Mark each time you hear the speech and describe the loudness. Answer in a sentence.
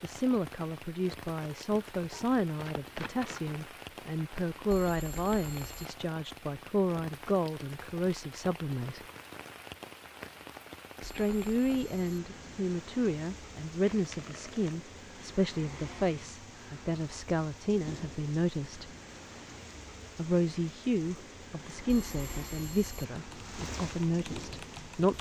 The speech can be heard from 0.0 to 9.0 s, at a steady volume; from 11.0 to 18.9 s, at a steady volume; and from 20.1 to 25.1 s, getting quieter then louder.